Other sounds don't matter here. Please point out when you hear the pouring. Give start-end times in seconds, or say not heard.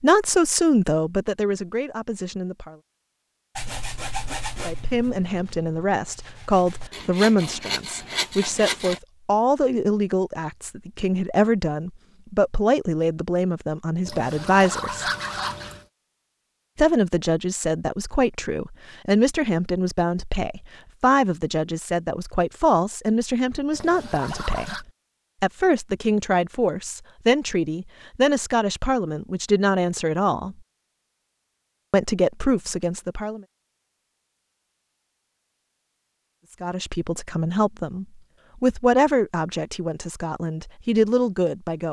14.1-15.8, 23.7-24.9.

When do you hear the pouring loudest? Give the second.
15 s.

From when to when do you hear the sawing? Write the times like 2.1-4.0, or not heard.
3.5-9.0.